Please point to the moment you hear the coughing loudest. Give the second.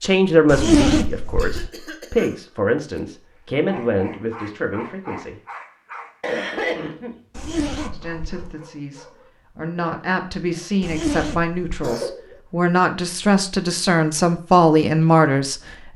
7 s.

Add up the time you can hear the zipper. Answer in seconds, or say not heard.
3 s.